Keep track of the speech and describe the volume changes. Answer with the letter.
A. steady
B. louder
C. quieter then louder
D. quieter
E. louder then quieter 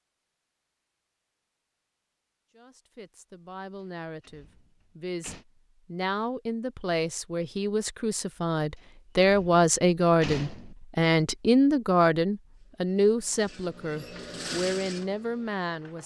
E.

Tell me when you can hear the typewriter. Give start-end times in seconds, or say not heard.
not heard.